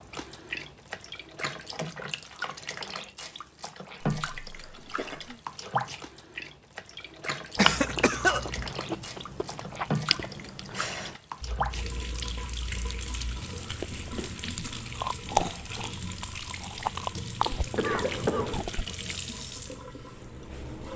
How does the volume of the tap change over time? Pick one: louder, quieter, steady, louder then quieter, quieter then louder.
steady.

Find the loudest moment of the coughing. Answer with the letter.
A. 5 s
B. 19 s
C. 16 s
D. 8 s
D.